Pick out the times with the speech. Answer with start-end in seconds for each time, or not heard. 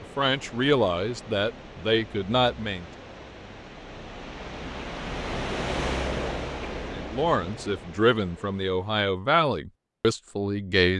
0.0-2.9, 6.9-10.9.